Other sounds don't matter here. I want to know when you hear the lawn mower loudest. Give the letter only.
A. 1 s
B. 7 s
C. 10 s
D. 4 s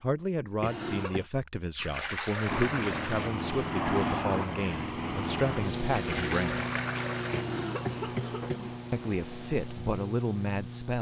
D.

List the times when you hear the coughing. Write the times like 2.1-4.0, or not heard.
0.6-1.2, 7.3-8.8.